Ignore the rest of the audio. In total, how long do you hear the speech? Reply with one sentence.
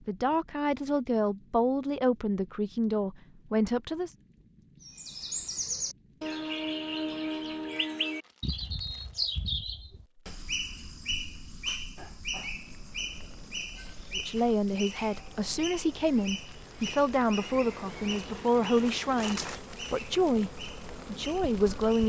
The speech can be heard for 12 seconds in total.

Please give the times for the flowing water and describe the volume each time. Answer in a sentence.
You can't hear the flowing water here.